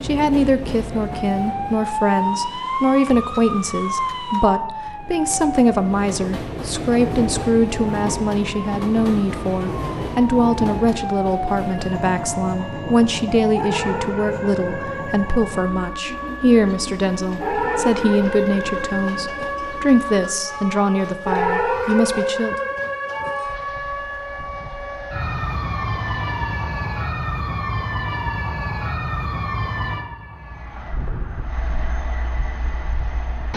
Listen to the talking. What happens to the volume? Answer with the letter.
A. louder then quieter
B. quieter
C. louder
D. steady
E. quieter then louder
D.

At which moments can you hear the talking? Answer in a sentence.
The talking can be heard from 0.0 to 22.6 s.